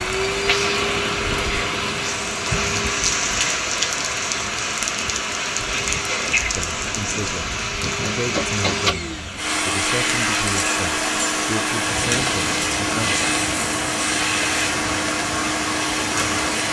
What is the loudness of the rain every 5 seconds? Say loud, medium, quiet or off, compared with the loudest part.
loud, loud, medium, medium.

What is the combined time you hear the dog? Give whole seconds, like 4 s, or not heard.
not heard.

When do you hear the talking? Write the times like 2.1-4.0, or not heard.
6.5-13.2.